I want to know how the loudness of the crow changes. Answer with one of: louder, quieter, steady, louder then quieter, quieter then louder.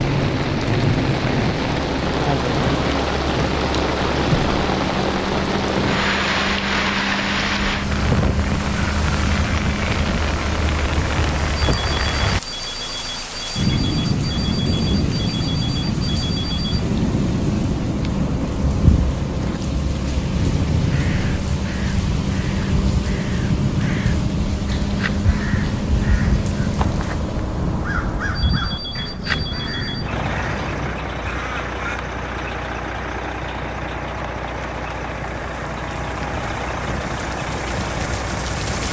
louder.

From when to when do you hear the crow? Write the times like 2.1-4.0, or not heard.
20.9-32.0.